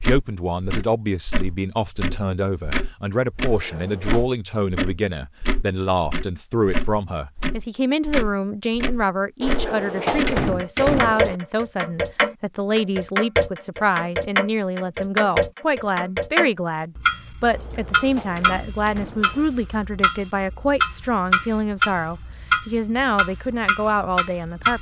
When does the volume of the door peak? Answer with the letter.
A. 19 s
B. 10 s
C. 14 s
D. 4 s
B.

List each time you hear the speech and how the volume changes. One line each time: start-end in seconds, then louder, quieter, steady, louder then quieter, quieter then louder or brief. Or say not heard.
0.0-24.7 steady.